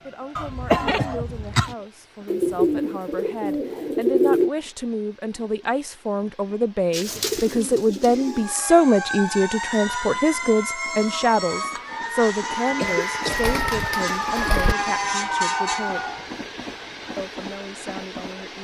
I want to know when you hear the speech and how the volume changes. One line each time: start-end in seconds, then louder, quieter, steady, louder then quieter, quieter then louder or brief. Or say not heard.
0.0-16.0 louder then quieter
17.1-18.5 brief.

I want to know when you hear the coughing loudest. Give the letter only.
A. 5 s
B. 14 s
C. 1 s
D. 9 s
C.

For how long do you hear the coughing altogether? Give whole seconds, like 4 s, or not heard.
2 s.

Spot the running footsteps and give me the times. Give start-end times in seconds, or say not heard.
not heard.